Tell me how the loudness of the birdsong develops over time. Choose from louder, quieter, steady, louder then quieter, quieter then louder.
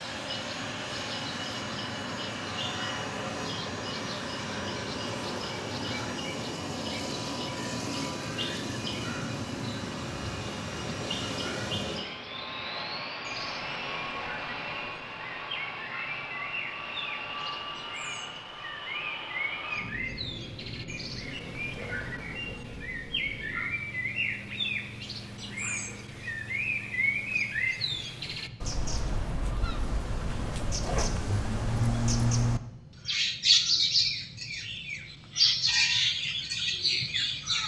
louder.